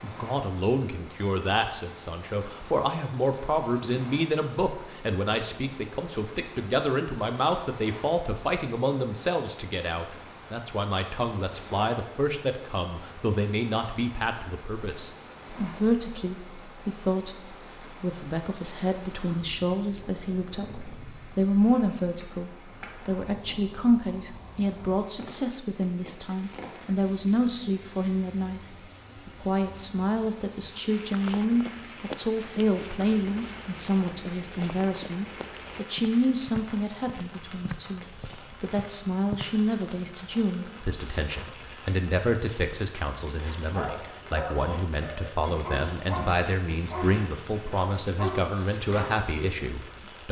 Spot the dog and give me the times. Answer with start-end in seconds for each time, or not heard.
43.5-49.0.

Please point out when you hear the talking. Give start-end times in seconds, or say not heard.
0.0-50.2.